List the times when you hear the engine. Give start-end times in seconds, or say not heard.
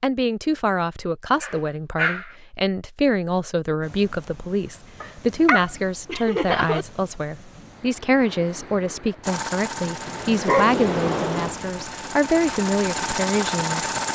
9.2-14.1.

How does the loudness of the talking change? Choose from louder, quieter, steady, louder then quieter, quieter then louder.
steady.